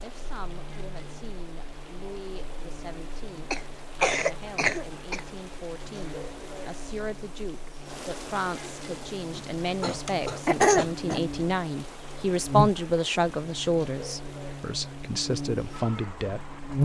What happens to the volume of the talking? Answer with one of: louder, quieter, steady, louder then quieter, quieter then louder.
louder.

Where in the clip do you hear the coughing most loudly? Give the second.
11 s.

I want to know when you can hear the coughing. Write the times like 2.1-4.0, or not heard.
3.5-5.2, 9.3-11.2.